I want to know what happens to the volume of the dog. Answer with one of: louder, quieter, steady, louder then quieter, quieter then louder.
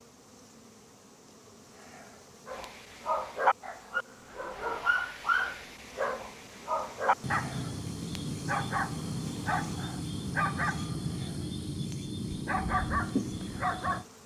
steady.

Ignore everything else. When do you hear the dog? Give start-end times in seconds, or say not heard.
2.5-14.1.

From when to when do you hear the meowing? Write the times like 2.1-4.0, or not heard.
not heard.